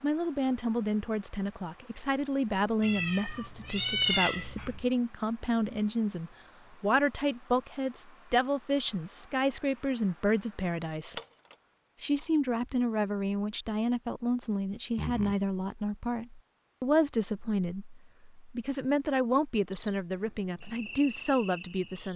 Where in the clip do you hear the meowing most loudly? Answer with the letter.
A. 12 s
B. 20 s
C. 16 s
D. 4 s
D.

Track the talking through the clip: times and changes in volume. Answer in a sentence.
The talking can be heard from 0.0 to 11.2 s, at a steady volume; and from 12.0 to 22.1 s, at a steady volume.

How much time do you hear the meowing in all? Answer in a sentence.
You can hear the meowing for 3 seconds altogether.